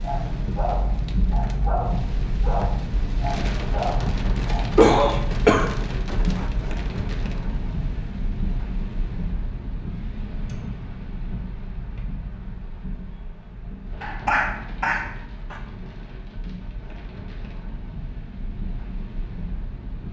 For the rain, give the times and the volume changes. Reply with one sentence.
The rain can be heard from 0.0 to 20.0 s, getting quieter.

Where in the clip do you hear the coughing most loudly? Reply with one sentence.
The volume of the coughing peaks at 5 seconds.